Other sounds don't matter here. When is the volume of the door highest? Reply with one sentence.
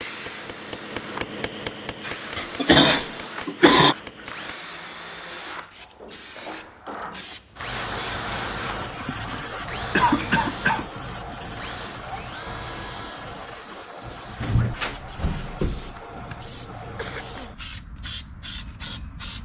The volume of the door peaks at 15 seconds.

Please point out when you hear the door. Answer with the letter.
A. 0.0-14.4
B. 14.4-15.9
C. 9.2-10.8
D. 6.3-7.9
B.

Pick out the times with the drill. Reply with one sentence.
The drill can be heard from 0.0 to 14.4 s.